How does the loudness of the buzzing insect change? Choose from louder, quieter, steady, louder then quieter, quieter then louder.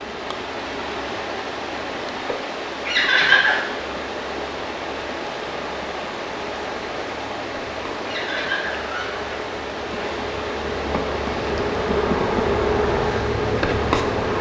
louder.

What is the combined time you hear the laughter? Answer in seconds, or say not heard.
2 s.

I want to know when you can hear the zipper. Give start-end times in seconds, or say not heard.
not heard.